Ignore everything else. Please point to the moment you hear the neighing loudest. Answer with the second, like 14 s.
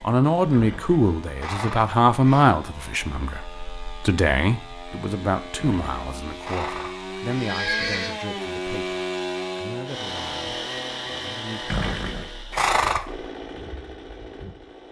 13 s.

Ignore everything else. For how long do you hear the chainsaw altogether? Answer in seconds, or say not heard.
15 s.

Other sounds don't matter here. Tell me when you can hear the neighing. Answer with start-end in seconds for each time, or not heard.
0.5-2.5, 5.5-8.2, 11.7-13.2.